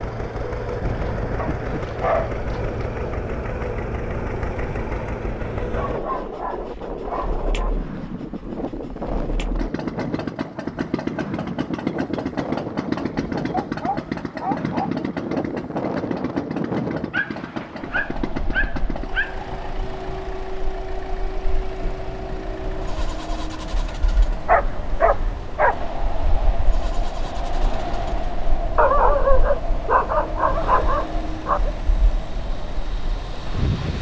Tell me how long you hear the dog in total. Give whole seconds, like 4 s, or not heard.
12 s.